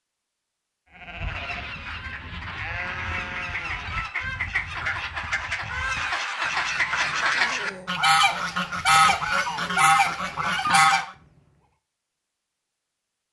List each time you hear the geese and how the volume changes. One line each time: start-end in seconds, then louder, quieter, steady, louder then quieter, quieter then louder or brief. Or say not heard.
1.1-11.1 louder.